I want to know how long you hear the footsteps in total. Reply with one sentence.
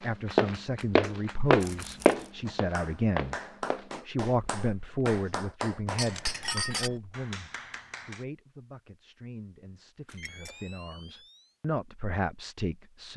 You can hear the footsteps for 5 seconds altogether.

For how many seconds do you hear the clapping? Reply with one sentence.
The clapping can be heard for 8 seconds in total.